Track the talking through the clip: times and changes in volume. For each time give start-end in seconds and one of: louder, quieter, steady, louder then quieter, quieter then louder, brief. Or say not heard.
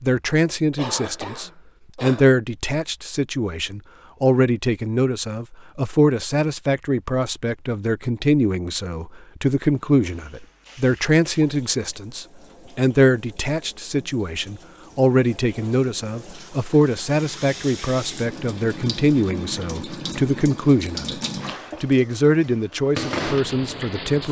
0.0-21.2 steady
21.8-24.2 brief.